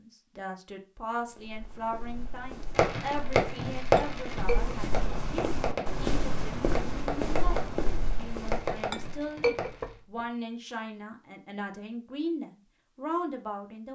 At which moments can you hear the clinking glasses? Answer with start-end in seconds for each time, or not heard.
4.0-4.8, 8.9-10.2.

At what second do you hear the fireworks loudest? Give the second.
4 s.